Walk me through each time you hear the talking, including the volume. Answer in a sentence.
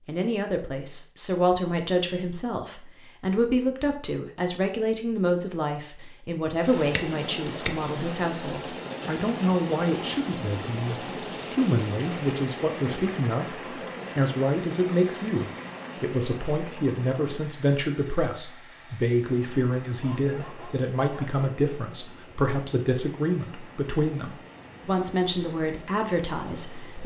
You can hear the talking from 0.1 to 27.0 s, at a steady volume.